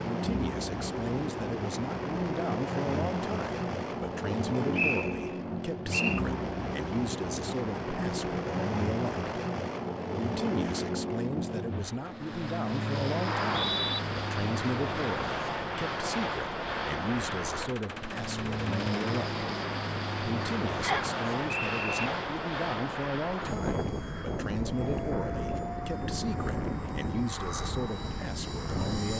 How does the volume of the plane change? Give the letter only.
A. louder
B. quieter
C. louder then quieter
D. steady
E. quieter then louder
D.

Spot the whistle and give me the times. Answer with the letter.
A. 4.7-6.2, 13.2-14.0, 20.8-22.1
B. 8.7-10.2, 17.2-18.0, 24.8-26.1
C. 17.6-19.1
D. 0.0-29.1
A.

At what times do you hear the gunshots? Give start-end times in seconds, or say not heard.
17.6-19.1.